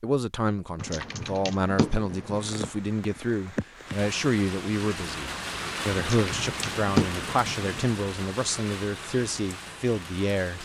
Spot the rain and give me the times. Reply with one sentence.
The rain can be heard from 2.4 to 10.5 s.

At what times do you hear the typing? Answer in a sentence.
You can hear the typing from 0.8 to 2.7 s and from 6.0 to 7.9 s.